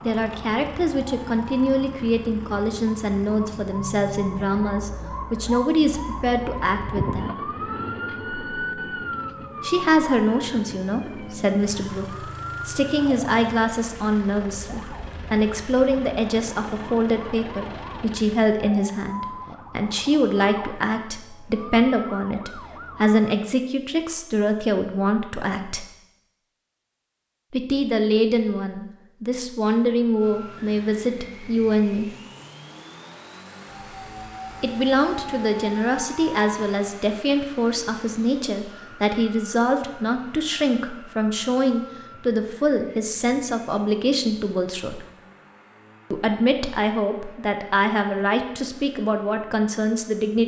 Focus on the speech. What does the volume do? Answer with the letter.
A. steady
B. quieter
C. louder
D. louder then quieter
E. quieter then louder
A.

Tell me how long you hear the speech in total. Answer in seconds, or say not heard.
43 s.